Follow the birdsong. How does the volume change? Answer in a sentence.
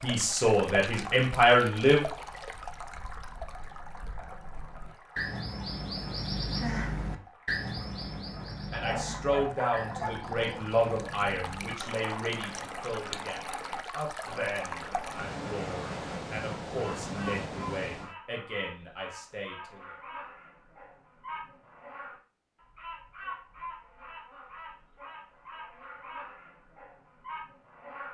The volume of the birdsong goes down.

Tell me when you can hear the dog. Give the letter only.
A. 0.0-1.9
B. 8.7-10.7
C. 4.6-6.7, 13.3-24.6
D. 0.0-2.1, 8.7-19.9
B.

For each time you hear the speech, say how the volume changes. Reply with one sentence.
You can hear the speech briefly from 0.0 to 2.1 s; and from 8.7 to 19.9 s, getting quieter.